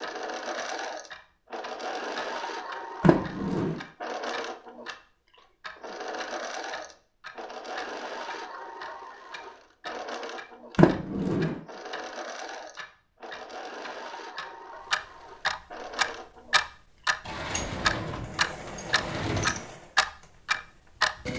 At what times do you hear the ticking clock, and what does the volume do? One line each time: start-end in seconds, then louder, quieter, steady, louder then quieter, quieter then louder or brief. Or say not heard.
0.0-12.1 steady
12.8-21.1 louder.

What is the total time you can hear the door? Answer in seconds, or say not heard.
4 s.